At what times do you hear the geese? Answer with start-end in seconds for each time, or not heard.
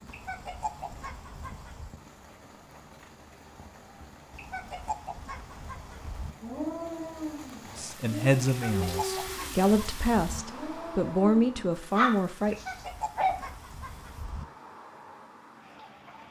0.1-1.9, 4.3-6.3, 8.4-10.4, 12.4-14.4.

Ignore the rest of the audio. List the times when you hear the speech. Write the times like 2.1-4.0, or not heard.
7.8-12.6.